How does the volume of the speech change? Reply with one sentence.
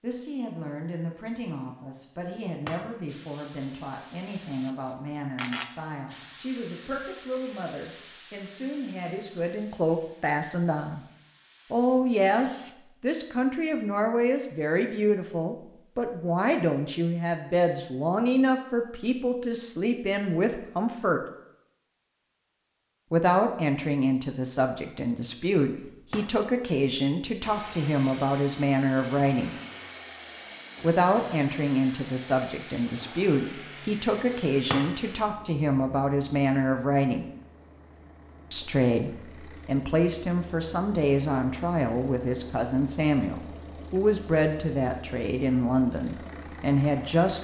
The volume of the speech goes up.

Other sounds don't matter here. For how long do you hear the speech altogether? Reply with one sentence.
The speech can be heard for 42 seconds in total.